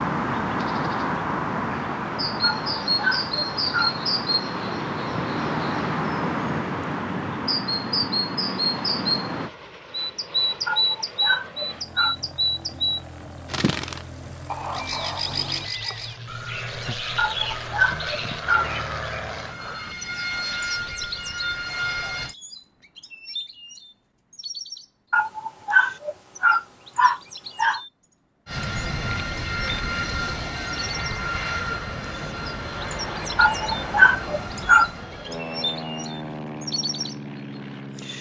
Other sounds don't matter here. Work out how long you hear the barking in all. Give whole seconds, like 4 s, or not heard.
9 s.